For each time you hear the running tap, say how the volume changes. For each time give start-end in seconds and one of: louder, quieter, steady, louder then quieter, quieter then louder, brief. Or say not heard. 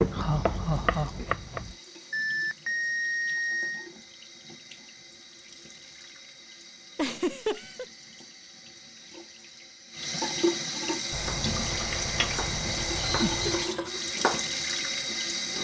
0.0-15.5 louder.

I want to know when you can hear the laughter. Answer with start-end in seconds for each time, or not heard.
0.1-1.8, 7.0-7.8, 13.1-13.5.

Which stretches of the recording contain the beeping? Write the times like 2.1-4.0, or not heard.
2.1-3.9, 11.1-13.7.